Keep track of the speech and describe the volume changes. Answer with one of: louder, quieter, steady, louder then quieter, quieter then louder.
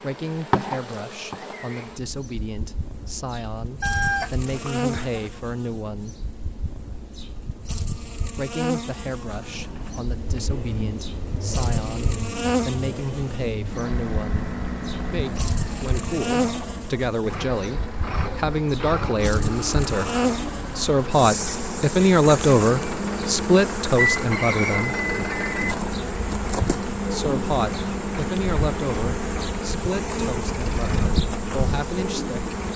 louder then quieter.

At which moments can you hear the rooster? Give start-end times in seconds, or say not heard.
3.8-5.3, 23.9-25.8.